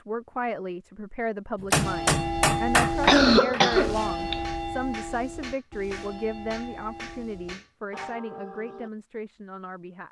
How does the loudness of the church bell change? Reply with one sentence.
The loudness of the church bell goes down.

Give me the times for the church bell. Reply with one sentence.
The church bell can be heard from 1.8 to 8.9 s.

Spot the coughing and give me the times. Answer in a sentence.
You can hear the coughing from 3.0 to 4.4 s.